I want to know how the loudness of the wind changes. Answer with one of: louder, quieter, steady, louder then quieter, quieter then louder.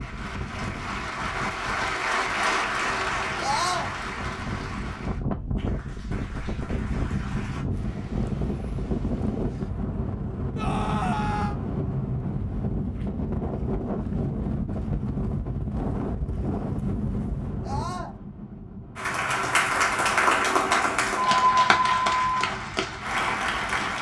louder then quieter.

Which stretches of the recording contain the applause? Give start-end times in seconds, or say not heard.
0.0-7.7, 18.9-23.9.